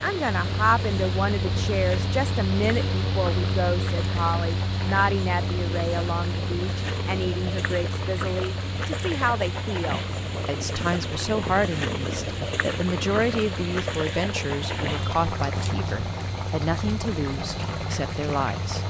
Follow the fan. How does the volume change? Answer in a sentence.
The volume of the fan goes down.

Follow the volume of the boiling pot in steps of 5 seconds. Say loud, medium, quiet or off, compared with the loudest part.
medium, loud, loud, loud.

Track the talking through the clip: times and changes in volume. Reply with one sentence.
The talking can be heard from 0.0 to 18.8 s, at a steady volume.